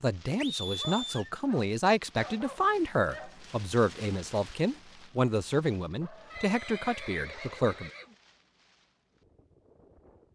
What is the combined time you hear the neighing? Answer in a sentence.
You can hear the neighing for 3 seconds altogether.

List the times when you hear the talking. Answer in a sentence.
You can hear the talking from 0.0 to 7.9 s.